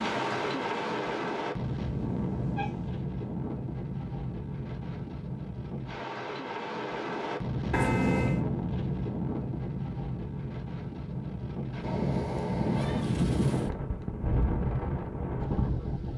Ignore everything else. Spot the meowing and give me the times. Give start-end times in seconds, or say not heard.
1.9-3.0, 7.7-8.4, 11.8-13.1.